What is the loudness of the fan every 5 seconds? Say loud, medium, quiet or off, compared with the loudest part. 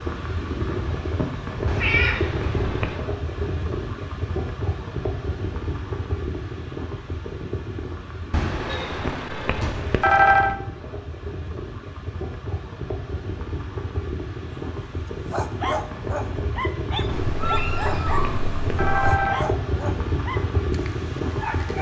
loud, medium, medium, loud, loud.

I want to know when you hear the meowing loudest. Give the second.
2 s.